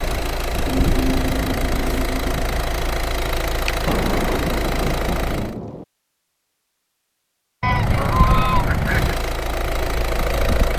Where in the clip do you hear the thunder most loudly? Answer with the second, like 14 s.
4 s.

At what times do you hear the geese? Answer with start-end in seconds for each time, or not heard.
0.7-2.5, 7.6-9.2.